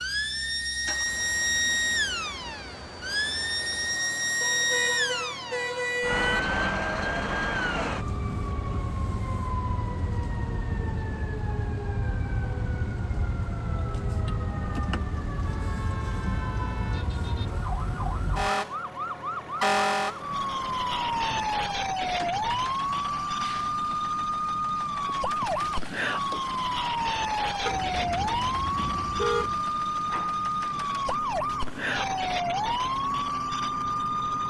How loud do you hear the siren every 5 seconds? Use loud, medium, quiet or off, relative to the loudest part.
loud, loud, medium, loud, loud, loud, loud.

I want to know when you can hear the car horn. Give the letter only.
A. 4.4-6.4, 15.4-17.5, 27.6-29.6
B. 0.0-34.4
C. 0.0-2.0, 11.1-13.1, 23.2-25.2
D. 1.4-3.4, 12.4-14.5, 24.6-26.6
A.